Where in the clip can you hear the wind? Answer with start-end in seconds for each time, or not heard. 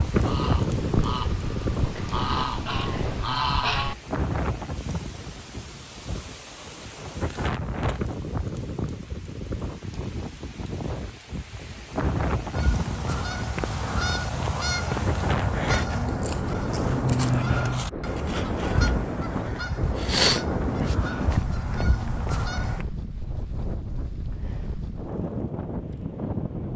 0.0-26.7.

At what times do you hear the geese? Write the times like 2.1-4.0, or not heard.
0.0-4.0, 12.5-22.9.